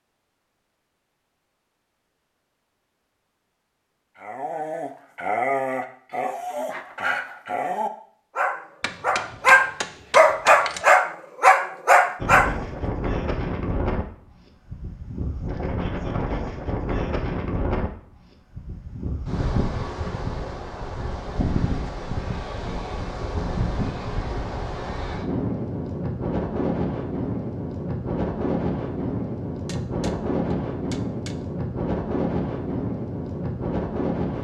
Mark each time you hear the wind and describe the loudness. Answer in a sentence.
The wind can be heard from 12.2 to 34.4 s, at a steady volume.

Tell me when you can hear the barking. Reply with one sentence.
The barking can be heard from 4.2 to 12.5 s.